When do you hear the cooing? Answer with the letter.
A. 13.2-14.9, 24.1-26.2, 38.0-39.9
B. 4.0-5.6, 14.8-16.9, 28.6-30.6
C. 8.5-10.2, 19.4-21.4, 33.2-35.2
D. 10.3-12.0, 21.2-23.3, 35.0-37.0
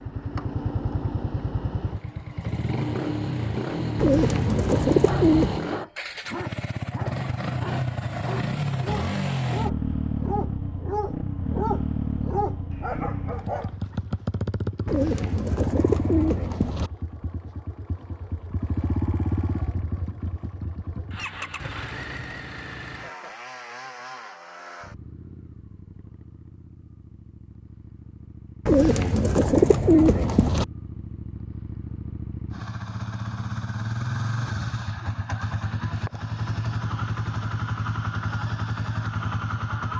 B.